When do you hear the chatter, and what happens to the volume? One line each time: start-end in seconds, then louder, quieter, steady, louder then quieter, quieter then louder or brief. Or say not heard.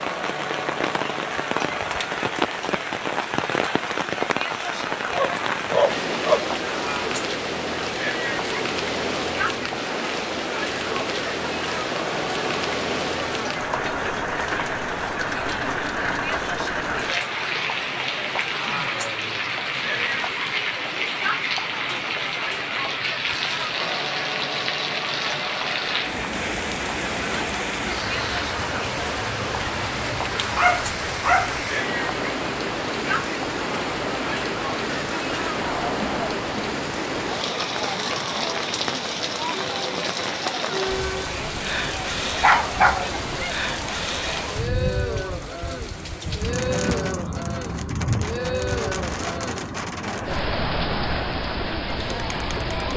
0.0-52.9 steady.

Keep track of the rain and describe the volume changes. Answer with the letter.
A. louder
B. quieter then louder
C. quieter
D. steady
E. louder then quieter
D.